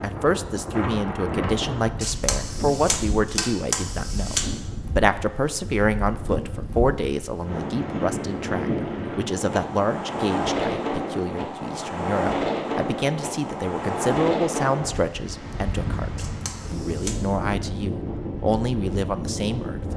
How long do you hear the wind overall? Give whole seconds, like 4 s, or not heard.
20 s.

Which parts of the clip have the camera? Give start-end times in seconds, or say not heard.
2.0-4.5, 16.1-17.2.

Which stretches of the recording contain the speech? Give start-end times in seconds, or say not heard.
0.0-19.9.